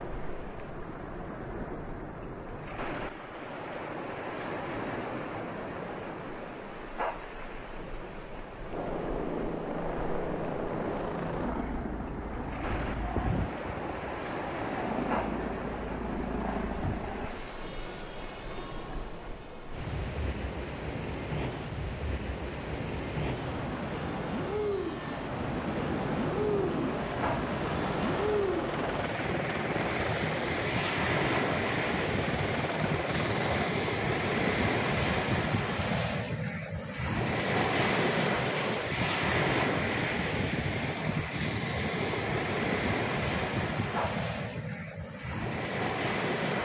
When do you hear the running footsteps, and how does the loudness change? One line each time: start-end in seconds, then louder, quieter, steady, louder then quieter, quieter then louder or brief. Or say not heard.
not heard.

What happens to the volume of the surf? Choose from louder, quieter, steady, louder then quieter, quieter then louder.
louder.